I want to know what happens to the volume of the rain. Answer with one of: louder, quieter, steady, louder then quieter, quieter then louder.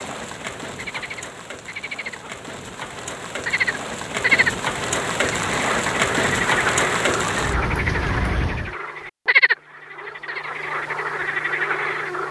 louder.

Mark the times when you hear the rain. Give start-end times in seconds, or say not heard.
0.0-8.8.